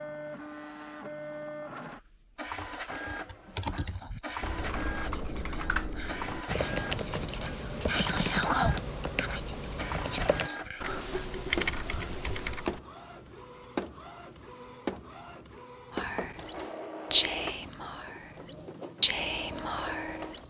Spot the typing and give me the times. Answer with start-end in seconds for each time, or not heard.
2.9-12.8.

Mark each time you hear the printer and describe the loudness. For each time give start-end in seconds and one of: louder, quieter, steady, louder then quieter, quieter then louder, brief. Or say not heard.
0.0-20.4 steady.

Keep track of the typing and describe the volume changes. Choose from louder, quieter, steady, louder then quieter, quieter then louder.
steady.